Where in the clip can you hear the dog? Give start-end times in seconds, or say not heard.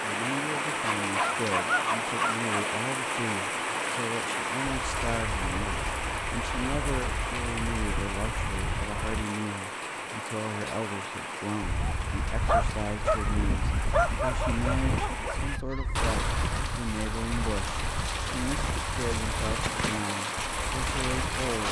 0.8-2.6, 12.4-15.3.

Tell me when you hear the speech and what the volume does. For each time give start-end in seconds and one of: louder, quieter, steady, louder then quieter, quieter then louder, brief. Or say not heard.
0.0-21.6 steady.